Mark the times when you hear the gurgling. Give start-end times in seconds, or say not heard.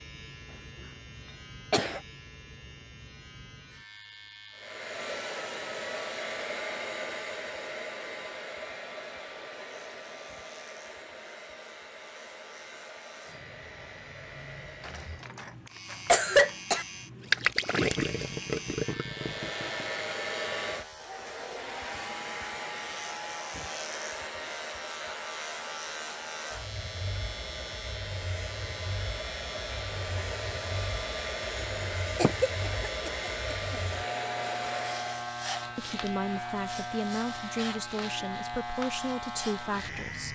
17.3-20.1.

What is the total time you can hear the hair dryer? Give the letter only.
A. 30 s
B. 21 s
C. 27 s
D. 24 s
C.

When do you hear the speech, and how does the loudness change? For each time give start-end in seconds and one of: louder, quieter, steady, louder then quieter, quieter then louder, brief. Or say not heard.
35.8-40.3 steady.